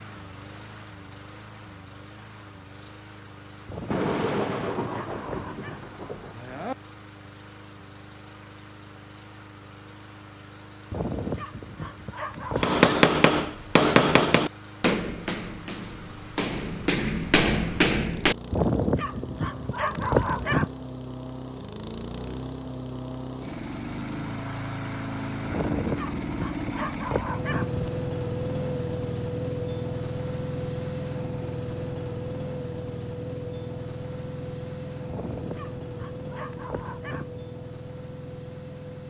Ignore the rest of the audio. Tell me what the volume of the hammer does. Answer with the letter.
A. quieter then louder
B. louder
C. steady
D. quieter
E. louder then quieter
A.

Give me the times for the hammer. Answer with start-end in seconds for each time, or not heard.
12.6-18.4.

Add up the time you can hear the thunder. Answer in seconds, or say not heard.
3 s.